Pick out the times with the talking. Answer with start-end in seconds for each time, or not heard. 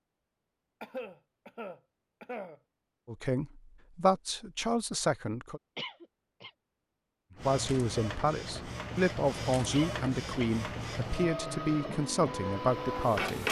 3.0-5.6, 7.4-13.4.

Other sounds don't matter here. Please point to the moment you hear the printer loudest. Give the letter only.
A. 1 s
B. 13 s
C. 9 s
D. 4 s
B.